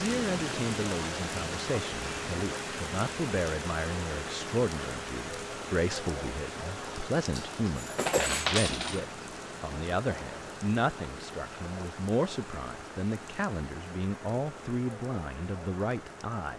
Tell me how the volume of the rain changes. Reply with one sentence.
The loudness of the rain goes down.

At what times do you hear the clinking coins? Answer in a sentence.
The clinking coins can be heard from 7.3 to 9.1 s.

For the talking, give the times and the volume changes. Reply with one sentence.
You can hear the talking from 0.0 to 16.5 s, at a steady volume.